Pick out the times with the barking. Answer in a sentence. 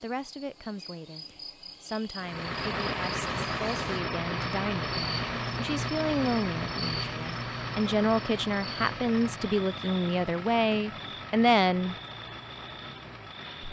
You can't hear the barking here.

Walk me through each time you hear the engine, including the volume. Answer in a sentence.
You can hear the engine from 2.1 to 13.6 s, getting quieter.